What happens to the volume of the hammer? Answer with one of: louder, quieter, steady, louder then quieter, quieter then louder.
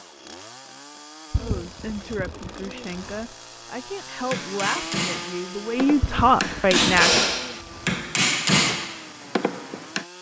louder then quieter.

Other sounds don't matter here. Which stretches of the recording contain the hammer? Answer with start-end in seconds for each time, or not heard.
4.3-10.1.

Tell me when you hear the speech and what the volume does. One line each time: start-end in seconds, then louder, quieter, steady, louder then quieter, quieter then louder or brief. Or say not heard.
1.3-7.3 louder.